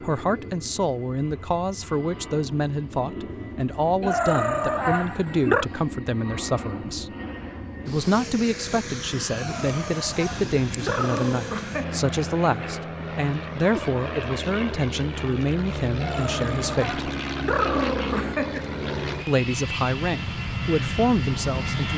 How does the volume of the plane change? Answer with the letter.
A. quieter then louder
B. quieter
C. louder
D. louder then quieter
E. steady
C.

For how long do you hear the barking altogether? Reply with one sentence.
You can hear the barking for 7 seconds altogether.